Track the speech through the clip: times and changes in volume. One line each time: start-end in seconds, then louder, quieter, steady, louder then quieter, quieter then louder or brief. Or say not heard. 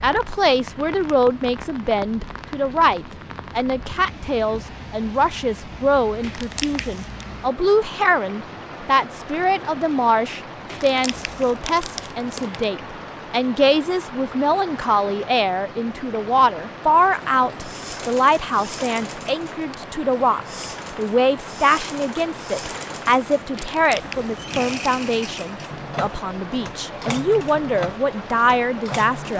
0.0-29.3 steady.